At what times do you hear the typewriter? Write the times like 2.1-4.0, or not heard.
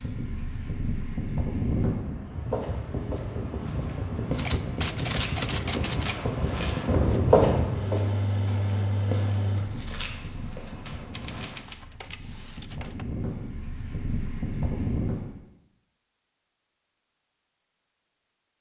4.3-6.2, 11.1-13.1.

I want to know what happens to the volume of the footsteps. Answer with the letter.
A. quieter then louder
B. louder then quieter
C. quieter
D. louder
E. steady
B.